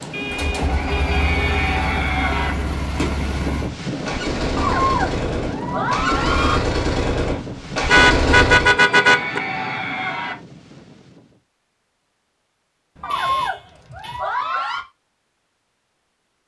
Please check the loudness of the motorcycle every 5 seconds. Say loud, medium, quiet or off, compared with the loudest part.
medium, loud, off, off.